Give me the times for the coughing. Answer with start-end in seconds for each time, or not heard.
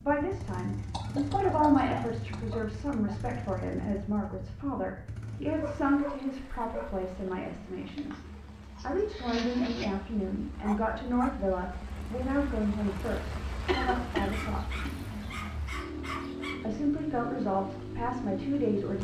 0.9-2.5, 8.0-9.8, 13.7-14.9.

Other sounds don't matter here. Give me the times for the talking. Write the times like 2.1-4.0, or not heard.
0.0-8.2, 8.8-14.8, 16.6-18.9.